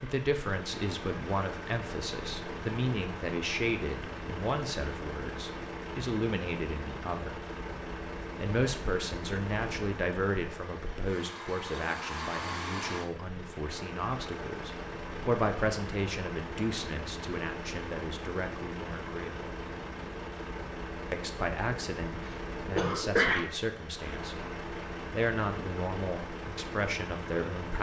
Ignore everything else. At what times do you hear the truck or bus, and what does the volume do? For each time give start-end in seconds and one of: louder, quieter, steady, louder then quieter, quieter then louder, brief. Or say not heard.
0.0-27.7 steady.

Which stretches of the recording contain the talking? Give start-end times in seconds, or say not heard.
0.0-7.5, 8.3-19.5, 21.1-24.4, 25.1-27.7.